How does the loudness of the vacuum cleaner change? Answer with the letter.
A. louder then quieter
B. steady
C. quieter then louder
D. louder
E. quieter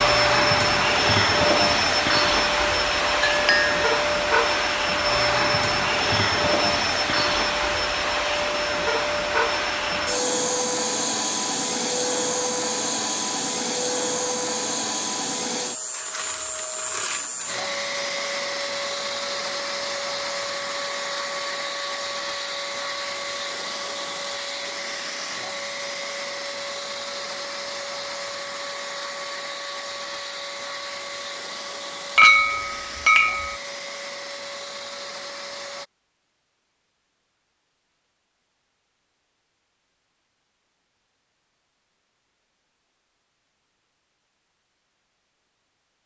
E.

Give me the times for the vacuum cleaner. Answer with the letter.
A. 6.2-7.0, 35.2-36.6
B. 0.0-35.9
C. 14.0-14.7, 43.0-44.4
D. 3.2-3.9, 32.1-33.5
B.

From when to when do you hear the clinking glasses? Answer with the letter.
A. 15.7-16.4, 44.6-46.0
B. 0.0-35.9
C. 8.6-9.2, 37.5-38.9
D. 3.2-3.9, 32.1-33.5
D.